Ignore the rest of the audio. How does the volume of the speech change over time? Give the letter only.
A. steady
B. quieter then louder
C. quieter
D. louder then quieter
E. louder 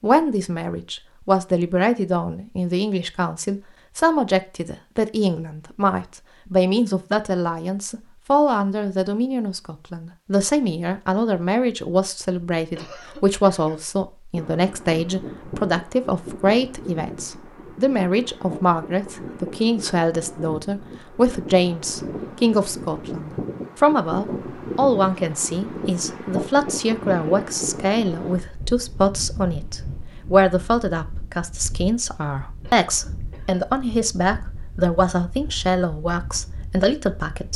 A.